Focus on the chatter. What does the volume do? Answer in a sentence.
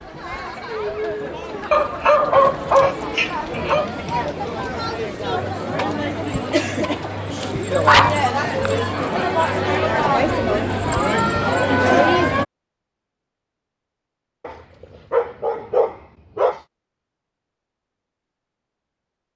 The volume of the chatter goes up.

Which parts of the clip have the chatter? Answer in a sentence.
The chatter can be heard from 0.0 to 12.4 s.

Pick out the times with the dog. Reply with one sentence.
You can hear the dog from 1.7 to 3.9 s, from 7.4 to 9.2 s and from 14.4 to 16.6 s.